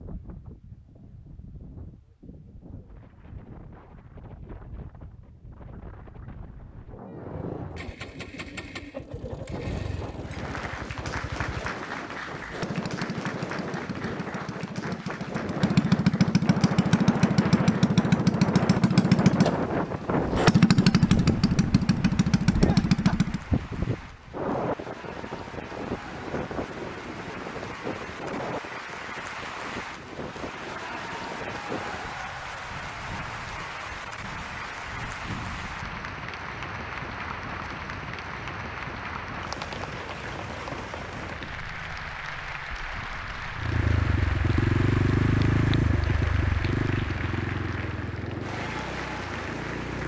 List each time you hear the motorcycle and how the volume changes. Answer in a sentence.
You can hear the motorcycle from 7.1 to 23.4 s, getting louder; and from 43.5 to 50.0 s, getting quieter.